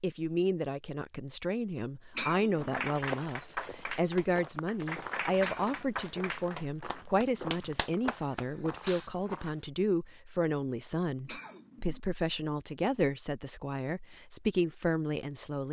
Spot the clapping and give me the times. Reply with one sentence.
You can hear the clapping from 2.5 to 9.1 s.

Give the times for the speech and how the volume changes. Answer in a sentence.
You can hear the speech from 0.0 to 15.6 s, at a steady volume.